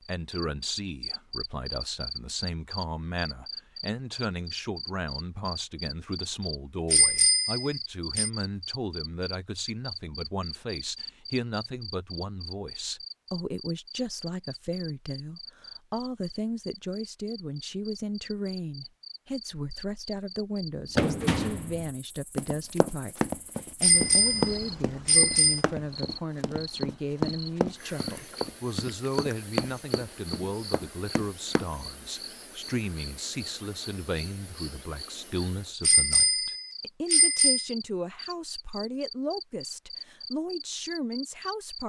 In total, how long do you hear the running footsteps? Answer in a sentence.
The running footsteps can be heard for 11 seconds in total.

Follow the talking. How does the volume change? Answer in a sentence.
The loudness of the talking stays about the same.